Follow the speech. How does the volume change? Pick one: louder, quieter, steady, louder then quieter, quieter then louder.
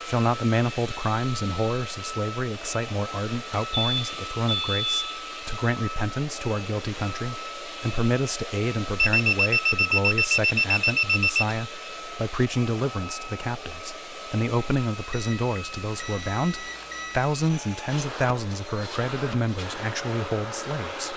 steady.